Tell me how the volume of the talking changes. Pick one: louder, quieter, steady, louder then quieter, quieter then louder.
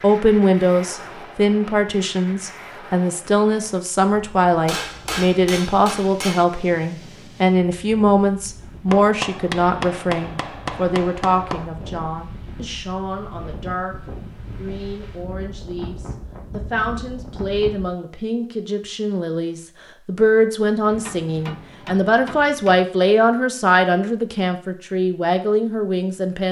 quieter then louder.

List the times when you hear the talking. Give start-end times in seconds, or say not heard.
0.0-13.9, 14.6-26.4.